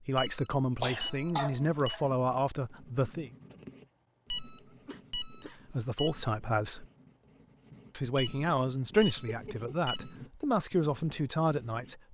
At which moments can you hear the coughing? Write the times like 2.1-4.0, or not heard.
0.8-2.0, 4.8-6.0, 9.2-9.7.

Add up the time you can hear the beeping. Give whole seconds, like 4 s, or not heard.
6 s.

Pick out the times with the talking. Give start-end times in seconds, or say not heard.
0.0-3.3, 5.7-6.8, 8.0-12.0.